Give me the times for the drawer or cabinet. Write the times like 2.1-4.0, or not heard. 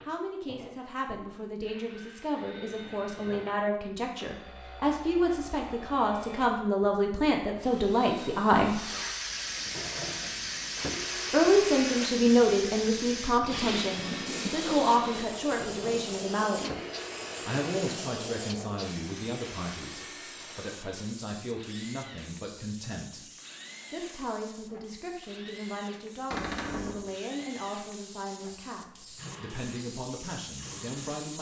26.3-27.1.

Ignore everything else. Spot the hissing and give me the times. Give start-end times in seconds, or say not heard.
8.7-31.3.